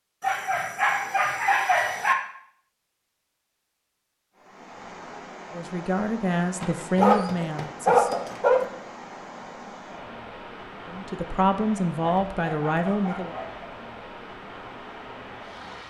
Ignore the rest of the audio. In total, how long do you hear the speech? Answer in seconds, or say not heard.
5 s.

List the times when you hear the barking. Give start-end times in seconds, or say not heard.
0.2-2.1, 6.6-8.7, 12.0-13.6.